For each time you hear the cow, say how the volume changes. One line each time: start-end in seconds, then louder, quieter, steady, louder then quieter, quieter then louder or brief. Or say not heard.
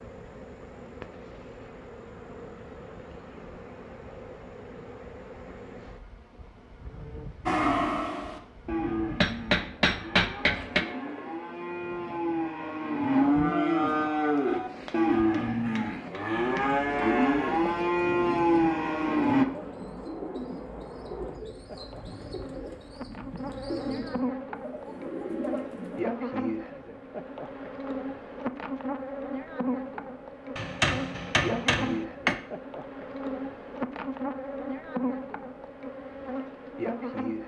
7.5-19.4 louder.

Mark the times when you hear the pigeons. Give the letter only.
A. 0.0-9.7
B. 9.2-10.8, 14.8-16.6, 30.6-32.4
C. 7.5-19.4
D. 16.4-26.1
D.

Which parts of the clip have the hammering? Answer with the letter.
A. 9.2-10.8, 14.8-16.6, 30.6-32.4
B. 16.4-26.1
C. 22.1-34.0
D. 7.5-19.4
A.